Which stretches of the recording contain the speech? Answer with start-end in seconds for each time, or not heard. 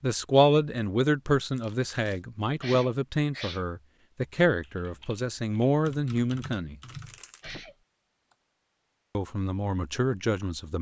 0.0-6.8, 9.2-10.7.